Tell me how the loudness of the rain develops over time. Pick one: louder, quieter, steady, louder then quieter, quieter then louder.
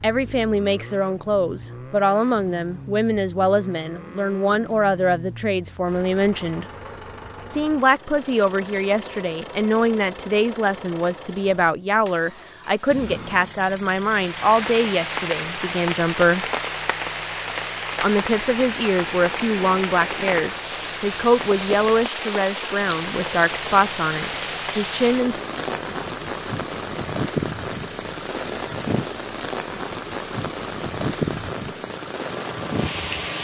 steady.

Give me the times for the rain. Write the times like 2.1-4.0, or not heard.
14.1-33.3.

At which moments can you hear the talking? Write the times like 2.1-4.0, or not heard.
0.0-6.7, 7.5-16.4, 18.0-25.4.